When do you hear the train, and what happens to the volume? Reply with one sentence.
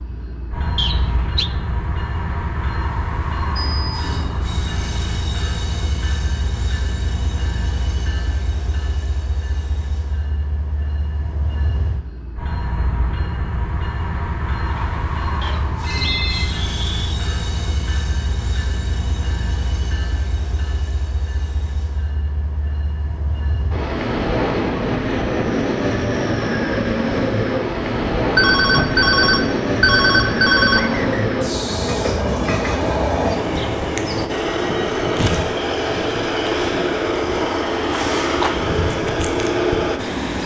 The train can be heard from 0.0 to 40.4 s, getting louder.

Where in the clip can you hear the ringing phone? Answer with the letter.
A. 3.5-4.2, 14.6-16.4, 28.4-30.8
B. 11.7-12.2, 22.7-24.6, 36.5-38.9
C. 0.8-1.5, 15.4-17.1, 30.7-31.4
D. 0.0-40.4
A.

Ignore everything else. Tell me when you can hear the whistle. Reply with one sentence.
You can hear the whistle from 0.8 to 1.5 s, from 15.4 to 17.1 s and from 30.7 to 31.4 s.